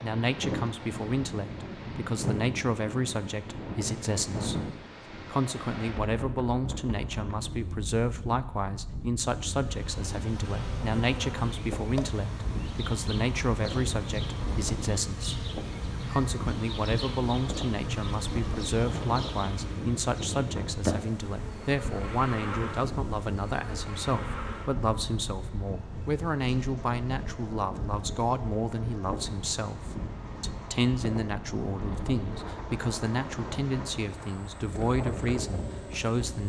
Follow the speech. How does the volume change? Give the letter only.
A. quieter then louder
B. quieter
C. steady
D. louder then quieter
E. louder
C.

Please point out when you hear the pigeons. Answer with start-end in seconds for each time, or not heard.
not heard.